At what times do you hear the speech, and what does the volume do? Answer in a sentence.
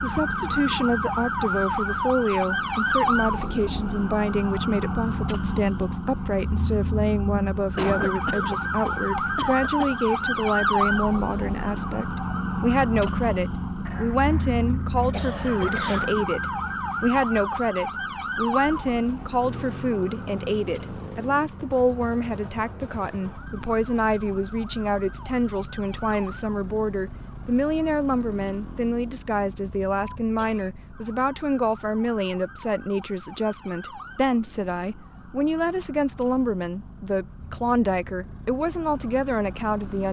The speech can be heard from 0.0 to 40.0 s, at a steady volume.